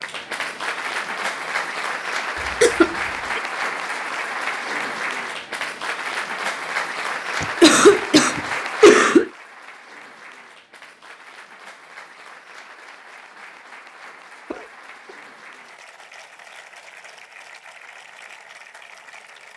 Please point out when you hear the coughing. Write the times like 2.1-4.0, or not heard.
2.6-3.4, 7.4-9.3, 14.5-15.2.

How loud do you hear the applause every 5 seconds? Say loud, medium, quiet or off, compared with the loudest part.
loud, loud, quiet, quiet.